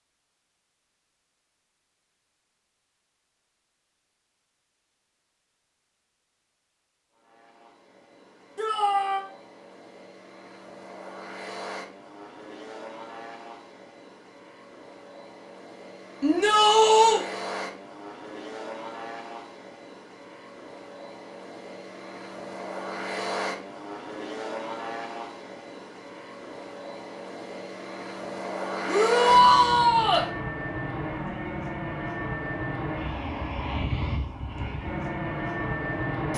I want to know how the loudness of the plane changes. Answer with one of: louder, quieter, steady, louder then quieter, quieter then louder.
louder.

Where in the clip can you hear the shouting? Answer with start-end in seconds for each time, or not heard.
8.6-9.2, 16.2-17.2, 28.9-30.2.